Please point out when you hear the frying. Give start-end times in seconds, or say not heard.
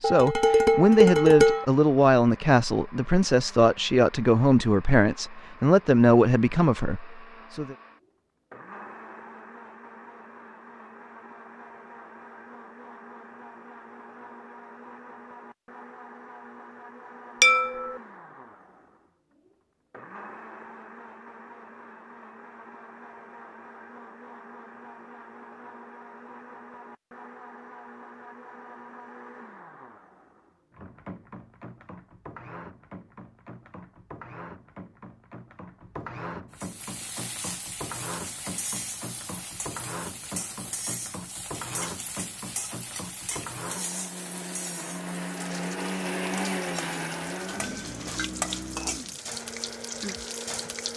36.5-50.9.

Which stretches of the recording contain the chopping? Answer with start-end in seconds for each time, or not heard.
not heard.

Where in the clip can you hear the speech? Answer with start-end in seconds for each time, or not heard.
0.0-7.8.